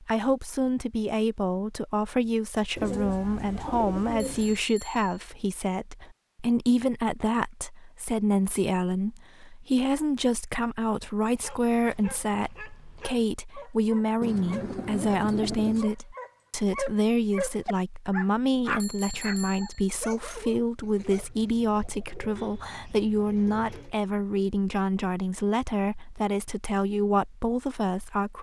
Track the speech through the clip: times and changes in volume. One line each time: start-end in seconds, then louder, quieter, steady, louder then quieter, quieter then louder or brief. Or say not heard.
0.0-28.3 steady.